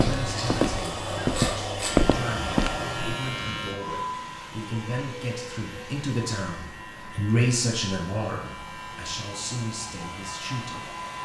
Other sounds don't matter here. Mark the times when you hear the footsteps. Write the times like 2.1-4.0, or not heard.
0.0-2.7.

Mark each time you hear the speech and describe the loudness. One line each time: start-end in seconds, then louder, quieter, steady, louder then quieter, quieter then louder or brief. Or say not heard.
0.0-10.9 louder then quieter.